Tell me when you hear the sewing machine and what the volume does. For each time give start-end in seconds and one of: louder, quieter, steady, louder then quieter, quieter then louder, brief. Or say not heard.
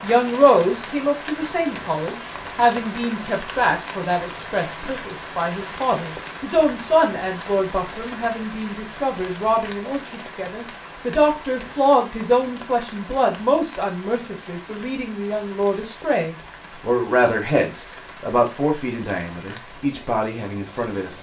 not heard.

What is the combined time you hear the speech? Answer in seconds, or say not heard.
21 s.